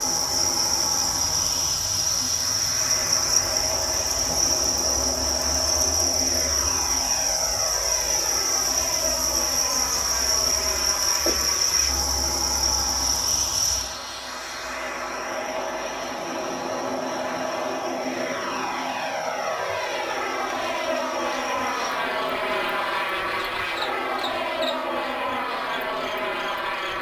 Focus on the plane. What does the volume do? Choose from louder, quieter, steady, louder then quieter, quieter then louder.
louder.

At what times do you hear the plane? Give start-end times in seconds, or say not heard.
0.0-26.9.